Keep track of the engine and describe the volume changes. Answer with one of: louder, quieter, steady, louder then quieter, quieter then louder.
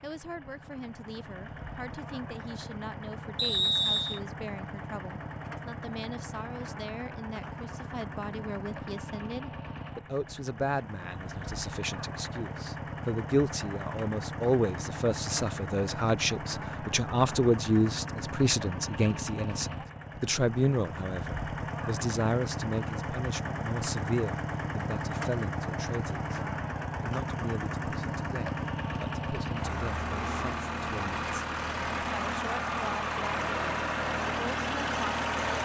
louder.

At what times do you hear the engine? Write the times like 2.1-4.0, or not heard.
0.0-35.6.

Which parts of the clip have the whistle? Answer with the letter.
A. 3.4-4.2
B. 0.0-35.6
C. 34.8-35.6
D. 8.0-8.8
A.